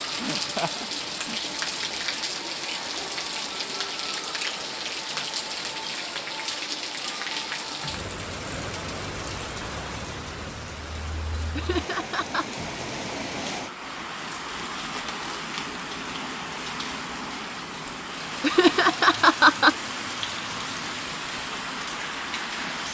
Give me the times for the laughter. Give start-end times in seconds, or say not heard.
0.2-1.4, 11.6-12.4, 18.4-19.8.